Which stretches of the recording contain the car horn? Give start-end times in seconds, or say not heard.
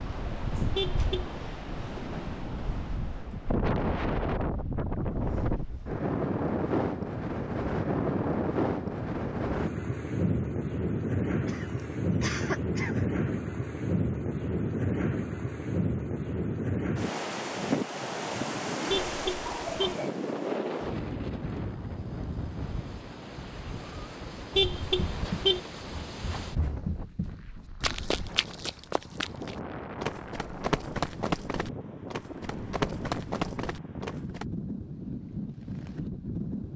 0.8-1.4, 18.9-19.9, 24.6-25.6.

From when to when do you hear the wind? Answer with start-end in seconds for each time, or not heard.
0.0-36.7.